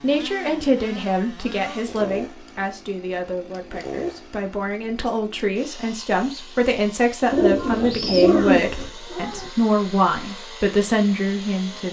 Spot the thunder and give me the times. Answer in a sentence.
The thunder can't be heard in this clip.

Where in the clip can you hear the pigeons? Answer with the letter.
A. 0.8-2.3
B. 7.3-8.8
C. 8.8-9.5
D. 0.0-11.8
B.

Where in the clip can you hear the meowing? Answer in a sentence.
The meowing can be heard from 8.8 to 9.5 s.